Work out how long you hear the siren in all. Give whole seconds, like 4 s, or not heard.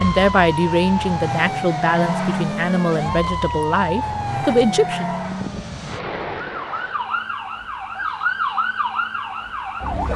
10 s.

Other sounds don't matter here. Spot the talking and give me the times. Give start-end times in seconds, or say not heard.
0.0-5.0.